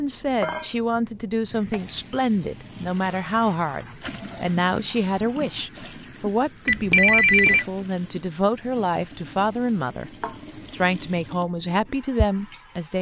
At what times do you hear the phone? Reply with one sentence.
You can hear the phone from 6.7 to 7.7 s.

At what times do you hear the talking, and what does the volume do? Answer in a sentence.
You can hear the talking from 0.0 to 10.1 s, at a steady volume; and briefly from 10.7 to 12.9 s.